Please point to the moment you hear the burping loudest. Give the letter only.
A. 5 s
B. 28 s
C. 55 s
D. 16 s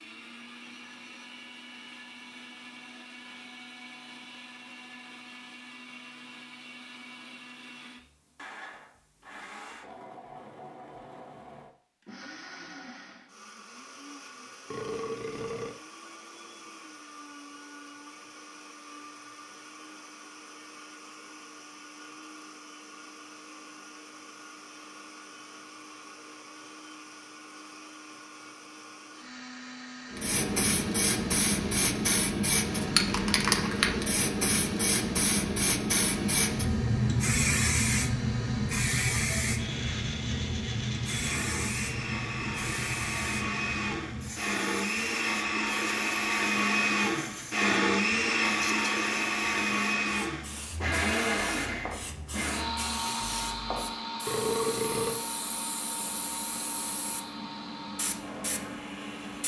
C.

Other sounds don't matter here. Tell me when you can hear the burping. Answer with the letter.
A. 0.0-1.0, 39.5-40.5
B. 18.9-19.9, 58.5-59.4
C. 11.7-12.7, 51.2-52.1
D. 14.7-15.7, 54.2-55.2
D.